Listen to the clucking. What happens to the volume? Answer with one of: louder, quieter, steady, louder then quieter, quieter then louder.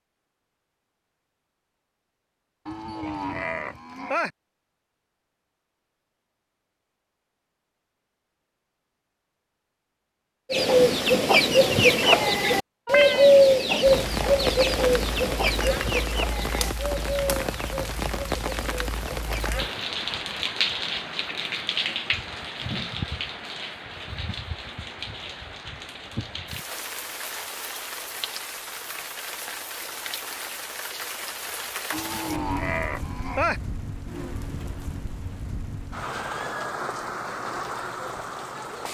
quieter.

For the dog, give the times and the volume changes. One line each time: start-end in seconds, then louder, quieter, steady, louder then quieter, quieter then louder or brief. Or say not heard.
not heard.